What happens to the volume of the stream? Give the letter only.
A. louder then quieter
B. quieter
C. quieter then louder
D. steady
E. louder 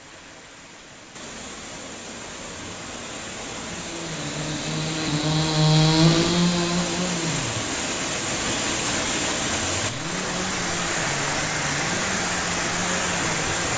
E.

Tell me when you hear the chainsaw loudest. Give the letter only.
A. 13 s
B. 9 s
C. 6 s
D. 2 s
C.